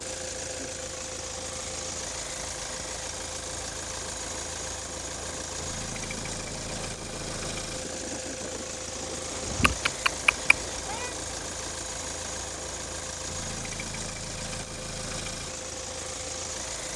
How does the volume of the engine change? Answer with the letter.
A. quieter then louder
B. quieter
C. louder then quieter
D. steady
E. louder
D.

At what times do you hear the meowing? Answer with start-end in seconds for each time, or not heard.
9.4-11.2.